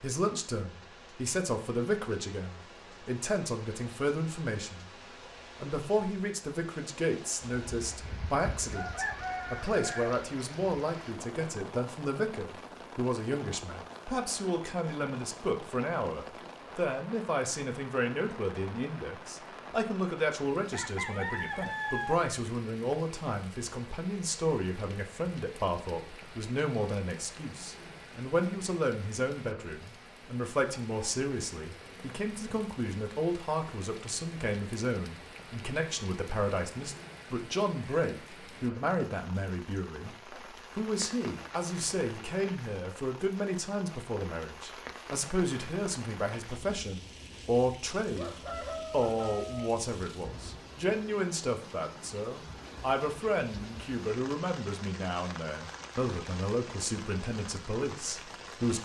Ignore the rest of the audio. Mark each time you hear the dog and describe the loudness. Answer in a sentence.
The dog can't be heard in this clip.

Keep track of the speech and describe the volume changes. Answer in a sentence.
The loudness of the speech stays about the same.